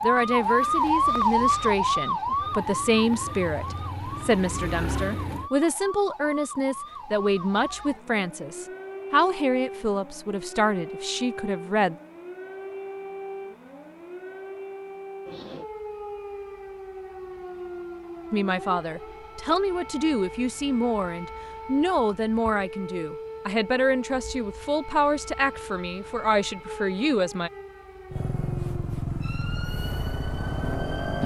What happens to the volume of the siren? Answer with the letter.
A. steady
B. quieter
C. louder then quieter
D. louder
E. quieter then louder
B.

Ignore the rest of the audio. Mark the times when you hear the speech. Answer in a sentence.
You can hear the speech from 0.0 to 11.9 s and from 18.3 to 27.5 s.